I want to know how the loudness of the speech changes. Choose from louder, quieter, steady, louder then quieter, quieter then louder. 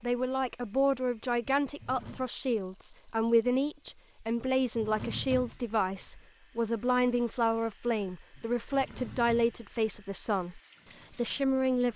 steady.